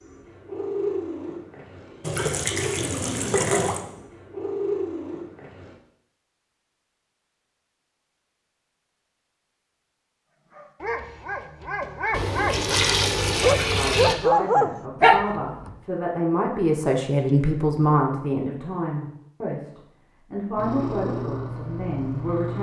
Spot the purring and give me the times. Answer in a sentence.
You can hear the purring from 0.0 to 5.8 s and from 20.6 to 22.5 s.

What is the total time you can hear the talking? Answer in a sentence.
The talking can be heard for 9 seconds in total.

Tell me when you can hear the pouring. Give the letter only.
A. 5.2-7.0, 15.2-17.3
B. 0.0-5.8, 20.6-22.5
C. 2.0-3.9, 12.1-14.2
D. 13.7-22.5
C.